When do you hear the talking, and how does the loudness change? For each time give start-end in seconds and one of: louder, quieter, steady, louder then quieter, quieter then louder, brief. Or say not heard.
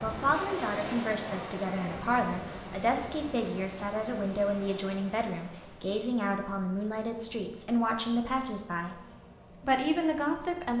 0.0-9.0 steady
9.6-10.7 brief.